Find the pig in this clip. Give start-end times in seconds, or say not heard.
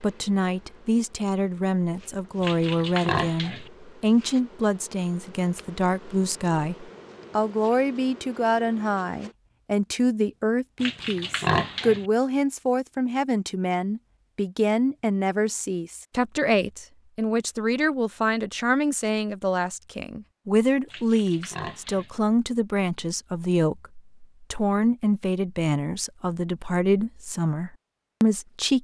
2.4-3.7, 10.8-12.1, 20.9-22.1.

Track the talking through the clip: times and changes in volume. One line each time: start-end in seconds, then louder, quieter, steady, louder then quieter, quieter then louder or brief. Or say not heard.
0.0-28.8 steady.